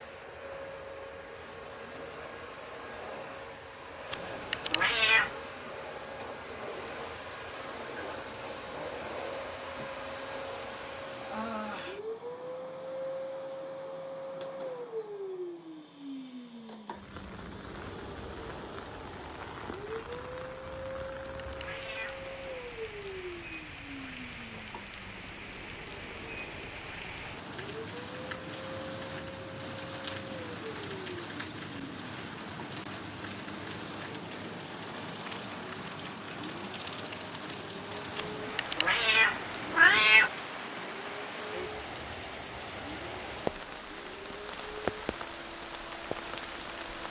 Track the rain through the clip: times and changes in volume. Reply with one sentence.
You can hear the rain from 16.9 to 47.0 s, getting louder.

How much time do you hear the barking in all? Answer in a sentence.
The barking can't be heard in this clip.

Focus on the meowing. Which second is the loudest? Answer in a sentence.
The loudest moment of the meowing is at 40 seconds.